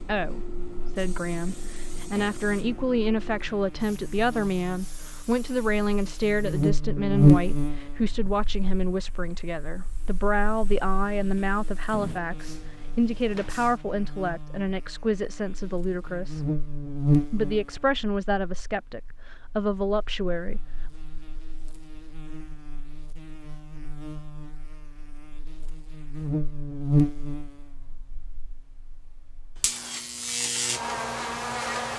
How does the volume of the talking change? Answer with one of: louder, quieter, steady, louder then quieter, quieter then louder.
steady.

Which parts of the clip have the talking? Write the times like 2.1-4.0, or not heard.
0.0-16.4, 17.3-20.6.